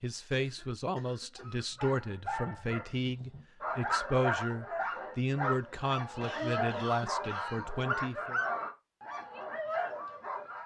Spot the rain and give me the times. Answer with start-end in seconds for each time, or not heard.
not heard.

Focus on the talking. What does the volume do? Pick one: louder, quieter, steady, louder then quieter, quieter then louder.
steady.